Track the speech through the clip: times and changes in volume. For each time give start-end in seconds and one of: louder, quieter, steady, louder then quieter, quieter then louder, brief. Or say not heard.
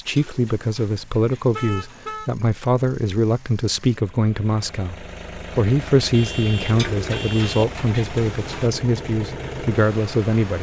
0.0-10.5 steady.